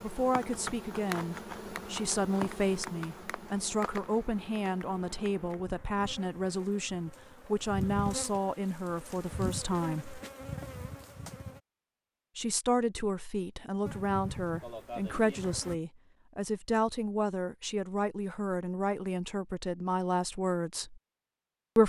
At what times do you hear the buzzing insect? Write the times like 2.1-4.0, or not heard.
0.0-11.6, 13.8-15.8.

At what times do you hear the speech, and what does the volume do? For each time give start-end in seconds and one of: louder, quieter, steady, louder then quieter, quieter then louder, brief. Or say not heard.
0.0-10.2 steady
12.3-21.0 steady.